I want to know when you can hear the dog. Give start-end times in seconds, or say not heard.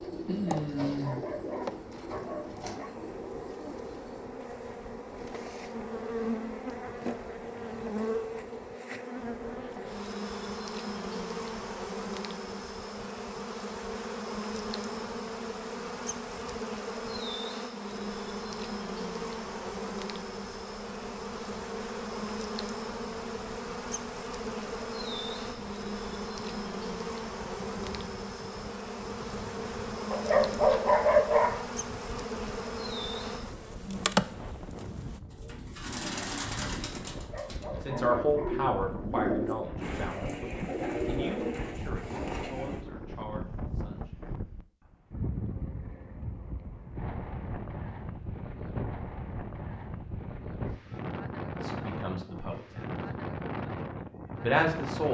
0.3-3.0, 30.1-31.6, 37.1-38.7.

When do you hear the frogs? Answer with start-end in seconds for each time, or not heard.
not heard.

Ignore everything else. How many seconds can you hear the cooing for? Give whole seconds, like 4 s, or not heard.
12 s.